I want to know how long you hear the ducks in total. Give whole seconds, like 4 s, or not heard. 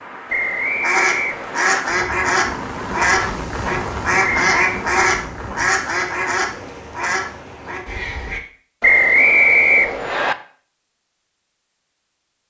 8 s.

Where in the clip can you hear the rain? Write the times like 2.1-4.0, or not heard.
0.0-7.9.